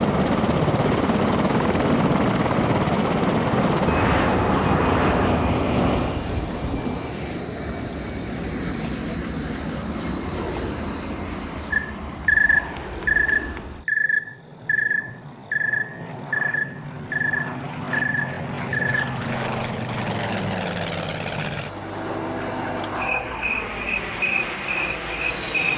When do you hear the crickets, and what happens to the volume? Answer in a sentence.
The crickets can be heard from 0.0 to 25.7 s, getting louder then quieter.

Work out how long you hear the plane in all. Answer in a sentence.
You can hear the plane for 26 seconds altogether.